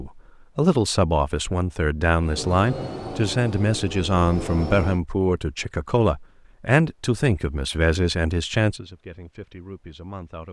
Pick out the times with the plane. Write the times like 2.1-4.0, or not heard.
2.1-5.0.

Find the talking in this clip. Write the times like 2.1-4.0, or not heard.
0.0-10.4.